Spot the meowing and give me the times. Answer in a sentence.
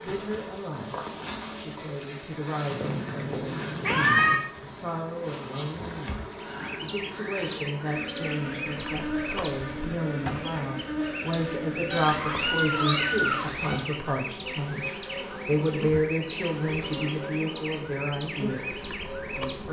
You can hear the meowing from 2.7 to 4.3 s and from 11.9 to 13.8 s.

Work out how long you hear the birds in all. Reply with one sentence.
You can hear the birds for 13 seconds altogether.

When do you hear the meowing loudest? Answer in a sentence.
The loudest moment of the meowing is at 4 seconds.